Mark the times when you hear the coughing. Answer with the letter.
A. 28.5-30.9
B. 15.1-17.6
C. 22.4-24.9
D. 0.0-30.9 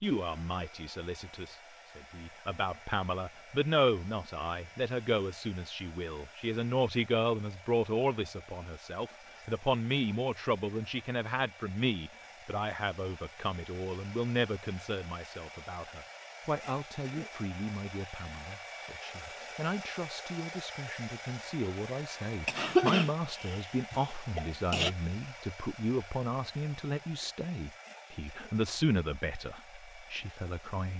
C.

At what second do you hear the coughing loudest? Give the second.
23 s.